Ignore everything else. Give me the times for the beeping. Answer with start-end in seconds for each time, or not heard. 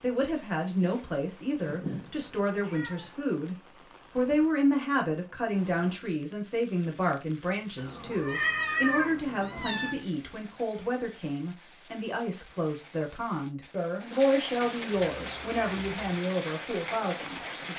not heard.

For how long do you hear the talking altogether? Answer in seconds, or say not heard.
18 s.